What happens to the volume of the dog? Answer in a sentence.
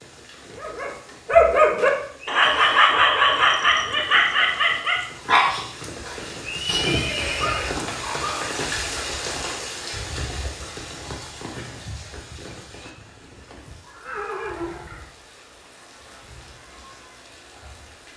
The loudness of the dog goes down.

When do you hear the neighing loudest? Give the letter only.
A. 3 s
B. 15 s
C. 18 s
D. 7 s
D.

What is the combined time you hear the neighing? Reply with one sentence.
The neighing can be heard for 3 seconds in total.